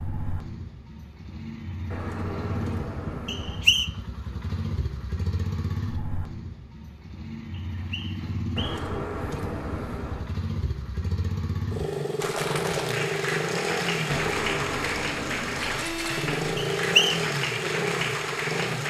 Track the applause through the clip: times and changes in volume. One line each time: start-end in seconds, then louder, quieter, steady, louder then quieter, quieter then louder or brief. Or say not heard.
12.2-18.8 steady.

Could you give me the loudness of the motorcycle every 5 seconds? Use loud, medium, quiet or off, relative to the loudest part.
medium, medium, loud, loud.